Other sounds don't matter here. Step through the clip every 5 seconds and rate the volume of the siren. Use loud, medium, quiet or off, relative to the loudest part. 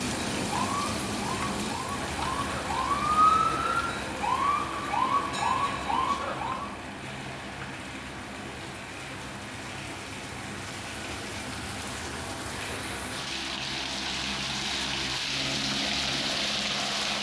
loud, loud, off, off.